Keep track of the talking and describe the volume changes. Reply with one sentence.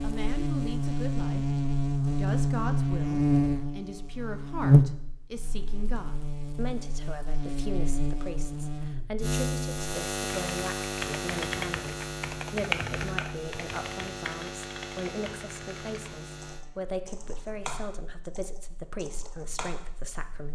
The loudness of the talking stays about the same.